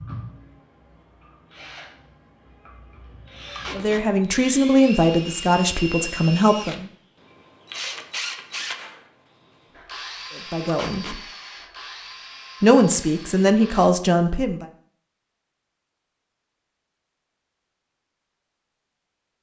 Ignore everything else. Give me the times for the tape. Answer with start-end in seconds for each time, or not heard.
3.5-4.0, 10.7-11.2.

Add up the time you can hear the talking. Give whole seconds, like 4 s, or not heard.
6 s.